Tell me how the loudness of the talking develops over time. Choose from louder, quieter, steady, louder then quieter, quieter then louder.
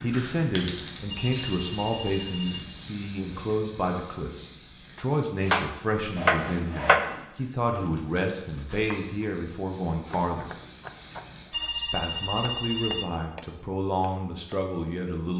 steady.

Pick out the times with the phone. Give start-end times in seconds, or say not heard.
1.1-2.6, 11.5-13.1.